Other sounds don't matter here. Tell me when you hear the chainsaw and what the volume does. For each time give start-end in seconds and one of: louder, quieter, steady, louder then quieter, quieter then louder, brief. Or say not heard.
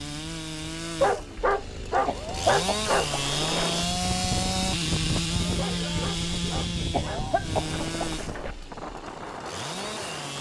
0.0-10.3 louder then quieter.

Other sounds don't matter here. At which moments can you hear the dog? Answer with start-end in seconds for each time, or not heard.
0.9-3.1, 5.5-7.3.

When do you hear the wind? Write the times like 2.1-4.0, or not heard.
3.0-10.3.